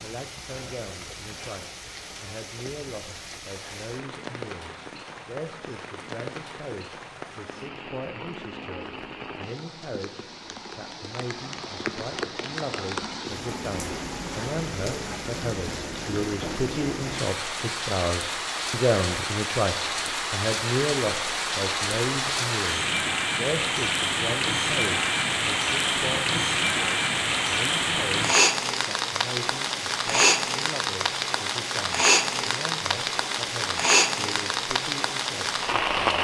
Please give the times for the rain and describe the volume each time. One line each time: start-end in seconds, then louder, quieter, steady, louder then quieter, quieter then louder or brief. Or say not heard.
0.0-36.1 louder.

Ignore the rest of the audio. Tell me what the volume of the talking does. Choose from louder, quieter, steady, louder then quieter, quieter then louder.
louder then quieter.